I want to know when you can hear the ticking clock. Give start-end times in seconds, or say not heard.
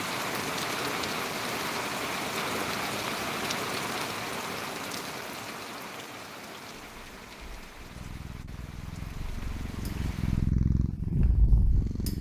not heard.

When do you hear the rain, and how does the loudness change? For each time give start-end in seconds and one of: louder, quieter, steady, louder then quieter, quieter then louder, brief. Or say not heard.
0.0-10.6 quieter.